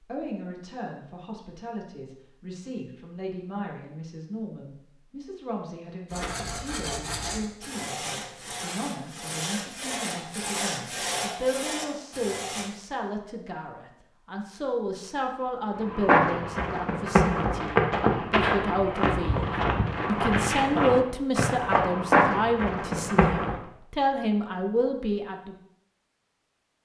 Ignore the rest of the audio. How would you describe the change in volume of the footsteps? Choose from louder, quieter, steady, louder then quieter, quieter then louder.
steady.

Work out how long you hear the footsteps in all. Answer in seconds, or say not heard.
8 s.